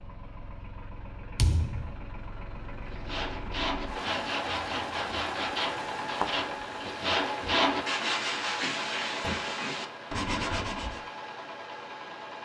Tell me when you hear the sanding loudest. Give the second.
8 s.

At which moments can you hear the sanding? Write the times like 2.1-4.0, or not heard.
2.9-11.0.